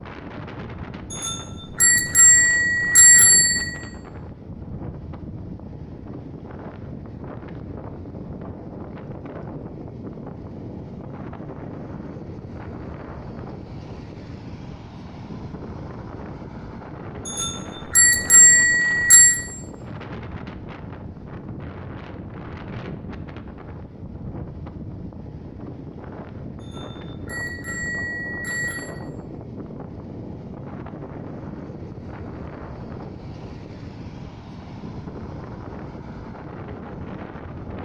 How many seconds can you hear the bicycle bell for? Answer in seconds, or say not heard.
7 s.